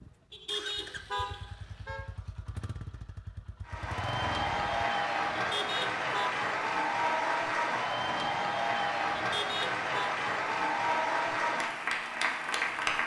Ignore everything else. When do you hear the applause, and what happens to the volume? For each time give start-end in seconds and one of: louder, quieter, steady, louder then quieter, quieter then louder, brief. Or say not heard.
3.6-13.0 steady.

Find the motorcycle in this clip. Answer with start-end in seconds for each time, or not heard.
0.0-4.7.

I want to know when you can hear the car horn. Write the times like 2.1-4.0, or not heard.
0.3-2.1, 5.3-6.4, 9.2-10.1.